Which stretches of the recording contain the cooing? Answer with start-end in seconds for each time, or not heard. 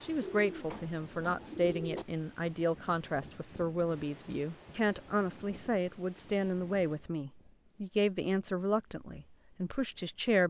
0.2-2.0.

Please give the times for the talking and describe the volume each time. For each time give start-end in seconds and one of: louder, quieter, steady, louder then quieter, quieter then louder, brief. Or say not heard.
0.0-10.4 steady.